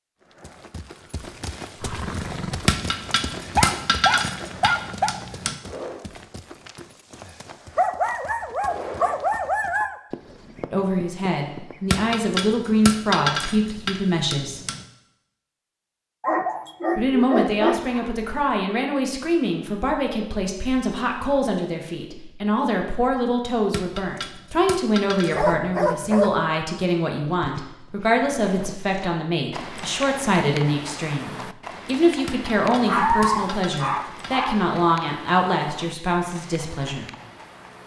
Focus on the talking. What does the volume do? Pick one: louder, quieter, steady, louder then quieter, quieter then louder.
steady.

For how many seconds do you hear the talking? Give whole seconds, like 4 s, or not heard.
24 s.